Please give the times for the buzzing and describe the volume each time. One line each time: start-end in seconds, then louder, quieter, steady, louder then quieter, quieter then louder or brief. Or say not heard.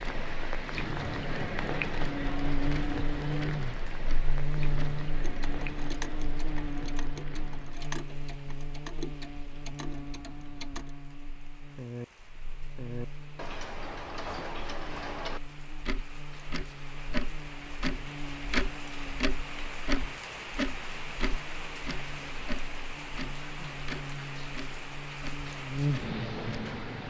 0.0-27.0 quieter then louder.